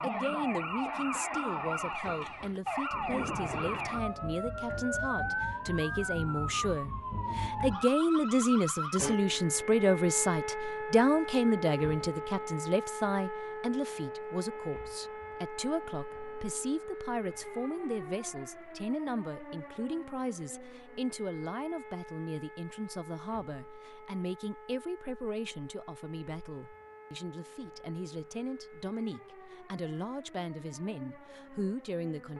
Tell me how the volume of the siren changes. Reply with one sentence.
The volume of the siren goes down.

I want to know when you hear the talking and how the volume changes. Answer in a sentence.
You can hear the talking from 0.0 to 32.3 s, getting louder then quieter.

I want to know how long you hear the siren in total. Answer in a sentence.
The siren can be heard for 32 seconds in total.